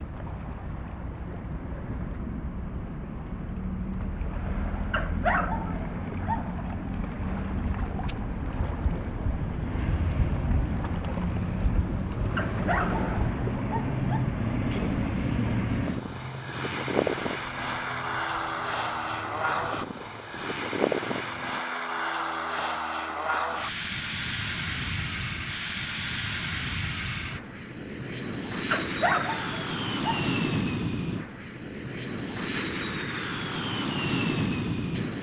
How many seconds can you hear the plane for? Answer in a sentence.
The plane can be heard for 35 seconds in total.